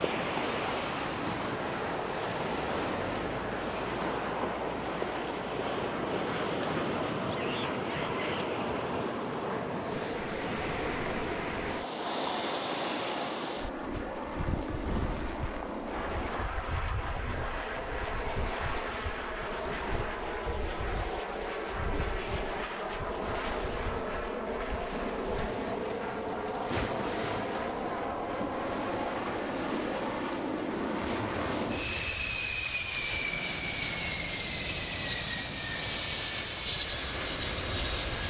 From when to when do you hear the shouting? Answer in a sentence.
You can hear the shouting from 7.2 to 8.4 s.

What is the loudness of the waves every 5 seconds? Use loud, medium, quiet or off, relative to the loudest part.
loud, loud, loud, medium, medium, medium, medium, medium.